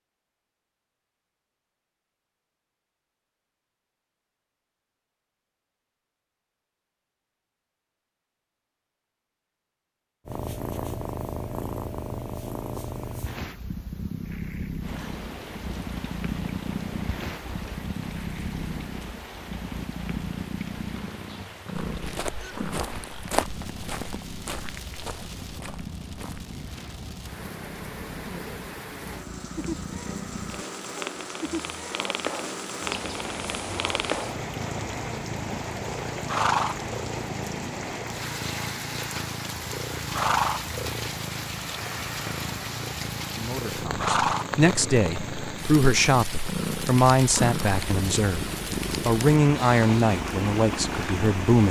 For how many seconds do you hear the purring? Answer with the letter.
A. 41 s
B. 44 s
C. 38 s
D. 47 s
A.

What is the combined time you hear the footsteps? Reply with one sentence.
You can hear the footsteps for 5 seconds altogether.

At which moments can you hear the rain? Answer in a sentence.
The rain can be heard from 14.8 to 51.6 s.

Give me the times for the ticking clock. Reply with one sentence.
The ticking clock can't be heard in this clip.